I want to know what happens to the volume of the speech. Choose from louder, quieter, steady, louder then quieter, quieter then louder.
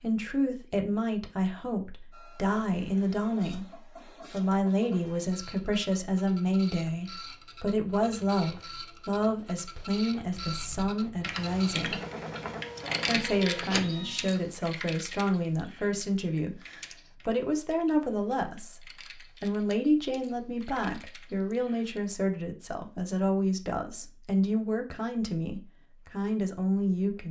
steady.